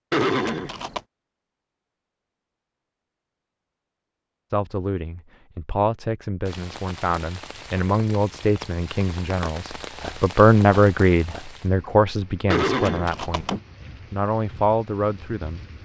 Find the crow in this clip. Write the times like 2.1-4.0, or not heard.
not heard.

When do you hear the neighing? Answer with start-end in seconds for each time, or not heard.
0.1-1.0, 12.5-13.6.